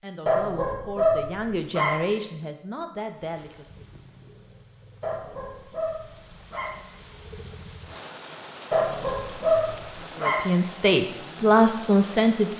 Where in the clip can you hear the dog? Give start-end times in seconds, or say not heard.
0.2-2.0, 5.0-6.8, 8.7-10.4.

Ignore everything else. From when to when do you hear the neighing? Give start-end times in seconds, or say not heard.
not heard.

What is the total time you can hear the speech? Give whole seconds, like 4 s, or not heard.
6 s.